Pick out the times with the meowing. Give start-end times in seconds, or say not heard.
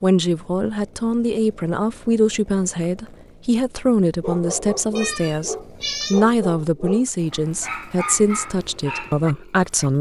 5.0-6.2.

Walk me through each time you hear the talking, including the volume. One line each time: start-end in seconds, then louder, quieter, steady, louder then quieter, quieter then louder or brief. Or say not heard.
0.0-9.9 steady.